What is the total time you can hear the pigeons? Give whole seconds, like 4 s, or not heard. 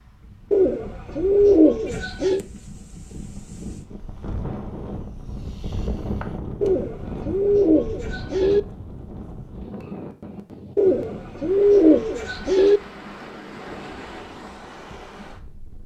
6 s.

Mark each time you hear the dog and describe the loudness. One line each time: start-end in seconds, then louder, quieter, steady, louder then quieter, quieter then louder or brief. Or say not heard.
not heard.